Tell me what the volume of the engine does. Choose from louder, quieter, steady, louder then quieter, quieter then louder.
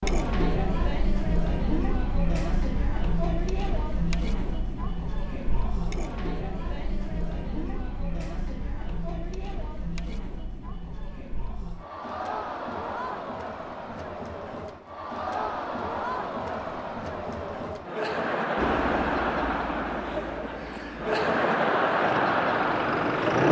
quieter then louder.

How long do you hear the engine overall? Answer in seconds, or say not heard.
5 s.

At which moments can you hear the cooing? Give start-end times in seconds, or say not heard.
not heard.